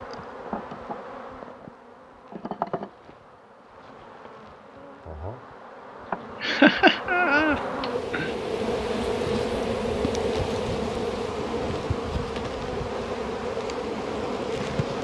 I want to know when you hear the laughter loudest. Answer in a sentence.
The loudest moment of the laughter is at 7 seconds.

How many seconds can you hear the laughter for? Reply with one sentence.
You can hear the laughter for 2 seconds altogether.